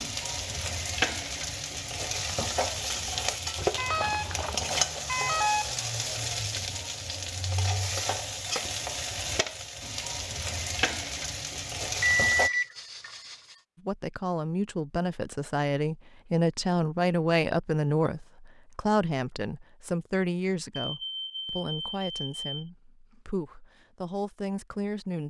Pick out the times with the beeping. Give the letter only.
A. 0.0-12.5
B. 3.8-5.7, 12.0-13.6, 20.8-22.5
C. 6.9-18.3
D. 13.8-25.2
B.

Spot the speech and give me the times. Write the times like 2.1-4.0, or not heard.
13.8-25.2.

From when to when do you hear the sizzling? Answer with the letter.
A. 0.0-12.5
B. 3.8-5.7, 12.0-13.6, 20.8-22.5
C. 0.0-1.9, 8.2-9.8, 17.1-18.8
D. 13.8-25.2
A.